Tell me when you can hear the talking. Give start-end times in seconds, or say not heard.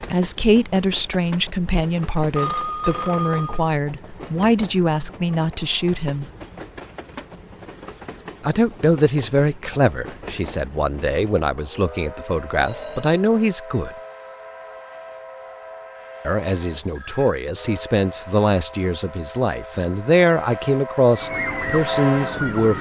0.0-6.2, 8.4-13.9, 16.2-22.7.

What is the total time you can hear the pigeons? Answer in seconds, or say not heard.
not heard.